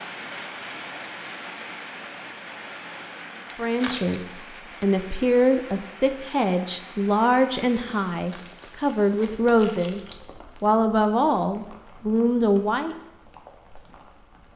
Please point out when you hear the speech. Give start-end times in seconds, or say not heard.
3.5-10.0, 10.6-12.9.